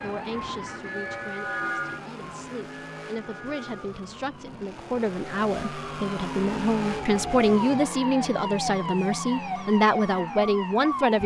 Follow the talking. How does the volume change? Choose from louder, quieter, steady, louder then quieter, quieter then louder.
louder.